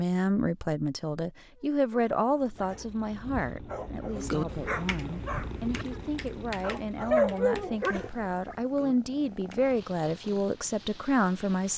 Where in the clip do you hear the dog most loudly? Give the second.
7 s.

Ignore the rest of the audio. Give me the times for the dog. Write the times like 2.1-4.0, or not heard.
1.6-8.6.